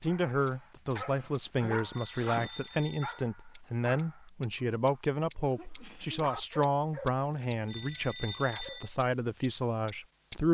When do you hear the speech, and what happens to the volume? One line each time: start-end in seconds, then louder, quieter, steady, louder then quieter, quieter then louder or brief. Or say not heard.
0.0-10.4 steady.